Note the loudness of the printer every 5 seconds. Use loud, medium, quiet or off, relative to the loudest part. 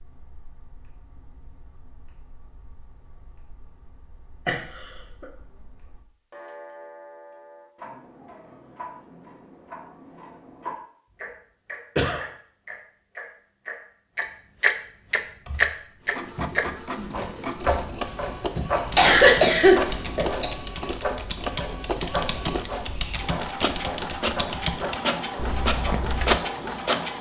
off, off, off, medium, medium, loud.